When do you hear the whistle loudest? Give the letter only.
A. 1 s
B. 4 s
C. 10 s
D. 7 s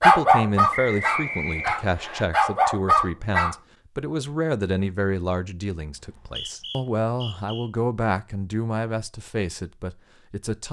A.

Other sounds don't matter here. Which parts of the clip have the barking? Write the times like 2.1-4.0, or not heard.
0.0-3.5.